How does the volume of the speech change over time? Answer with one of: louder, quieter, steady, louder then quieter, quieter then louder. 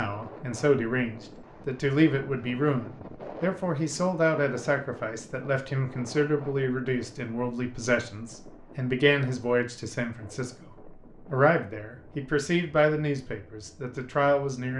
steady.